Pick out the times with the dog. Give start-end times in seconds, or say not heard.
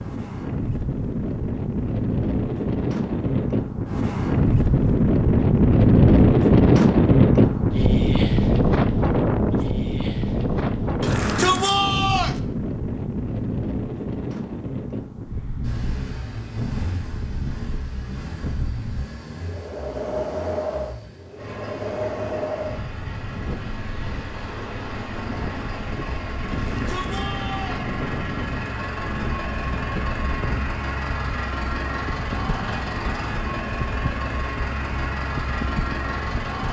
not heard.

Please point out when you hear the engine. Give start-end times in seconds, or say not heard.
15.6-36.6.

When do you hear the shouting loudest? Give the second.
12 s.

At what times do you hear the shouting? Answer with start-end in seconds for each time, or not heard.
11.0-12.4, 26.5-27.9.